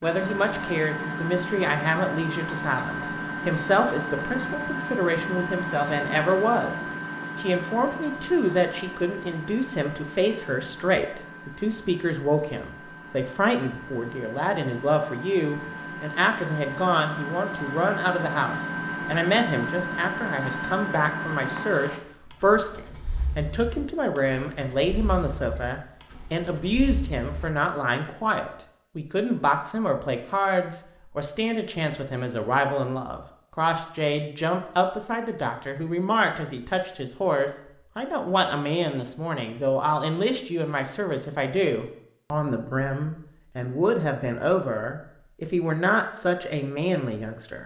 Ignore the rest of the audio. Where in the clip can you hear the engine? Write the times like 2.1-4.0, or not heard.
0.0-27.5.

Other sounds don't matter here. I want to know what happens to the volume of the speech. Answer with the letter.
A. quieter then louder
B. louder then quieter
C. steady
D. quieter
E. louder
C.